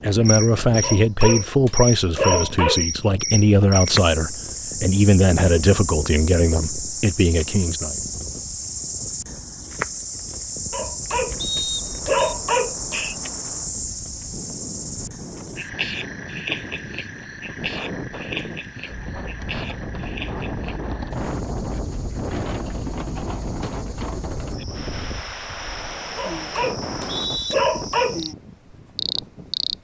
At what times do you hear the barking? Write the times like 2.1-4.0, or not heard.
0.8-2.9, 10.7-13.2, 26.1-28.2.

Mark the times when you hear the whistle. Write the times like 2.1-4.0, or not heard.
11.4-12.2, 26.8-27.6.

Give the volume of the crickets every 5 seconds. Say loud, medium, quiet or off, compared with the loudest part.
loud, loud, loud, medium, quiet, medium.